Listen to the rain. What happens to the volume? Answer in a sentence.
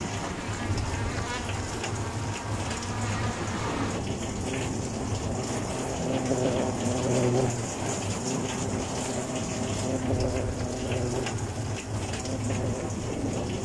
The loudness of the rain stays about the same.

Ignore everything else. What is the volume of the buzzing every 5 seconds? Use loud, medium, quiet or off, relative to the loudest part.
medium, loud, loud.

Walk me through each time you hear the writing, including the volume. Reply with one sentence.
The writing can't be heard in this clip.